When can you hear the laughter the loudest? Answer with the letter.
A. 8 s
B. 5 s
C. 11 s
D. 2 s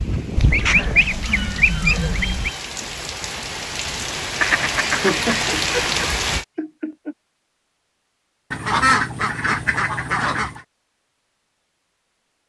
B.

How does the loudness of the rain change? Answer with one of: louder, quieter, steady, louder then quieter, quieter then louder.
louder.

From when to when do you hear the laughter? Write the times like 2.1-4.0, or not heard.
5.0-7.2.